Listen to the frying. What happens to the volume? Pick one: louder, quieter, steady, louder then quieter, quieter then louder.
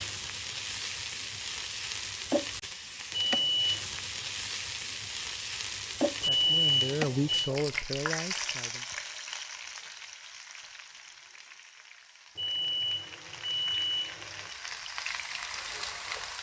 quieter then louder.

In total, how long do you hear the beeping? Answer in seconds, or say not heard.
4 s.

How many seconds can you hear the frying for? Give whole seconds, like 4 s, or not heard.
16 s.